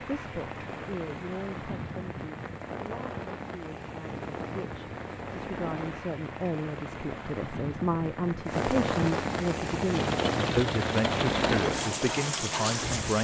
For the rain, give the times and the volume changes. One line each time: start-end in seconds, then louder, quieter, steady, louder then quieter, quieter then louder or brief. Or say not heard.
0.0-13.1 louder.